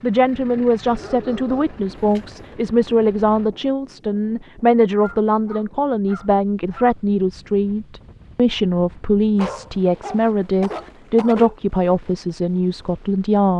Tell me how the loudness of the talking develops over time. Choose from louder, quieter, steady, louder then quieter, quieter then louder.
steady.